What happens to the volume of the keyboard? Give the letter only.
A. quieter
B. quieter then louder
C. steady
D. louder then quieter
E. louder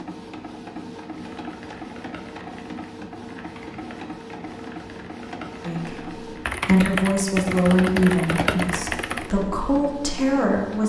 E.